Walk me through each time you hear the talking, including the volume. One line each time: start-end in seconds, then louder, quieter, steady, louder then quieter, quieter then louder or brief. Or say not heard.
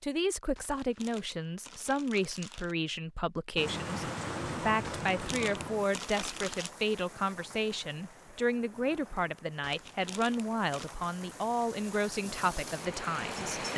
0.0-13.7 steady.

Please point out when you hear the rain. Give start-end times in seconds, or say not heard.
3.5-13.7.